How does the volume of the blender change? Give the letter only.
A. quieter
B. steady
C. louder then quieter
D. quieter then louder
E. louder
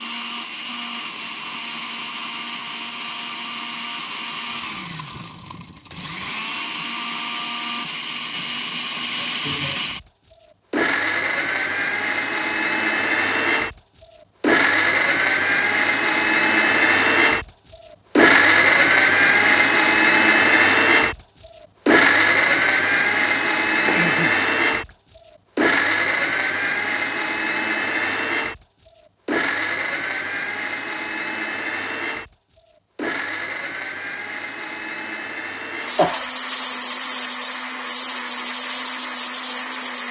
C.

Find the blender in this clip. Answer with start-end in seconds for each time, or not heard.
0.0-40.0.